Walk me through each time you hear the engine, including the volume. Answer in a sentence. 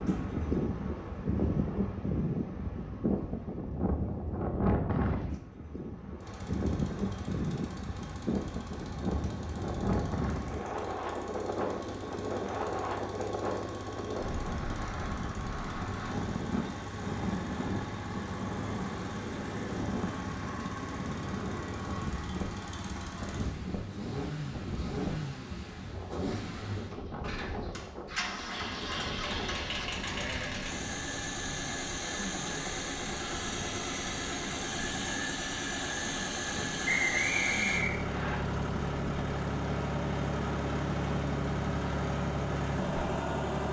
The engine can be heard from 6.2 to 43.6 s, getting louder.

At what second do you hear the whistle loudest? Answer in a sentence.
The loudest moment of the whistle is at 37 seconds.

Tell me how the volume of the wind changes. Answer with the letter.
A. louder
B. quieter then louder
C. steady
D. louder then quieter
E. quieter
E.